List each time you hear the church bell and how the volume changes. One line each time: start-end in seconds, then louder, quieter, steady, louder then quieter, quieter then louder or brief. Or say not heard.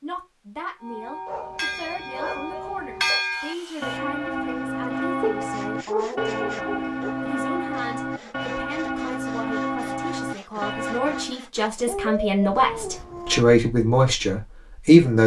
0.8-11.3 steady.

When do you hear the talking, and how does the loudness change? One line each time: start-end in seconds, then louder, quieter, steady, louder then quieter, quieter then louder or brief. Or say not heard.
0.0-15.2 louder.